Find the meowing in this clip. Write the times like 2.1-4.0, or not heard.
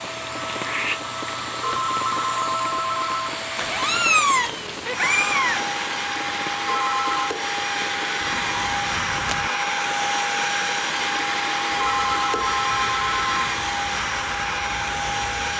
3.5-5.7, 8.2-9.5.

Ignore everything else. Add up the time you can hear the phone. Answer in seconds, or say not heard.
4 s.